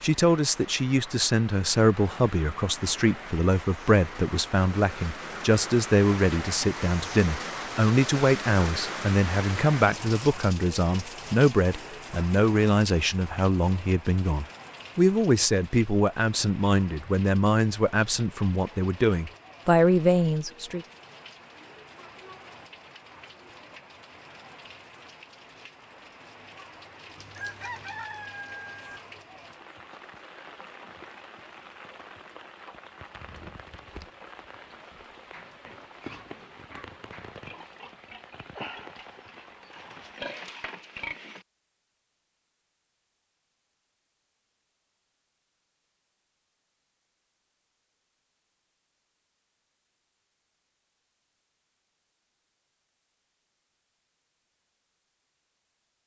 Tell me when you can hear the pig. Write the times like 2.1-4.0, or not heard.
35.3-41.5.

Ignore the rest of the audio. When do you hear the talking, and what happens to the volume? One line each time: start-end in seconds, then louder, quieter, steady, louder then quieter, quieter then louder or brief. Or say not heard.
0.0-20.9 steady.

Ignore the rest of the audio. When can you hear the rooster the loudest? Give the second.
28 s.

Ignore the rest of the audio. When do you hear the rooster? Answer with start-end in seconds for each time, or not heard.
27.1-29.0.